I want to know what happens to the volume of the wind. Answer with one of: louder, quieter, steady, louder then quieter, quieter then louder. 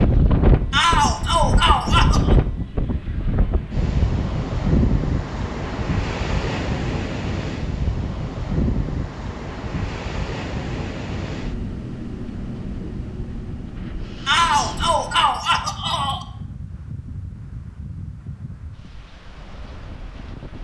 quieter.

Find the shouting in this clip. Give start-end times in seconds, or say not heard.
0.7-2.4, 14.2-16.2.